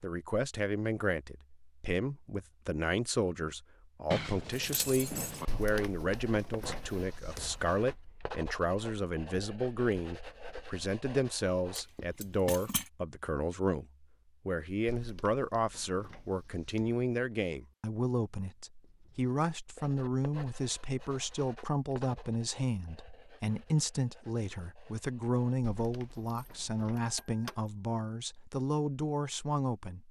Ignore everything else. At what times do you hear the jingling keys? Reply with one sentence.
The jingling keys can be heard from 4.1 to 5.5 s, from 11.8 to 12.9 s and from 26.2 to 27.7 s.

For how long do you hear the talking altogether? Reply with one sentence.
The talking can be heard for 30 seconds in total.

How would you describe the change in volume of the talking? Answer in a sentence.
The volume of the talking stays about the same.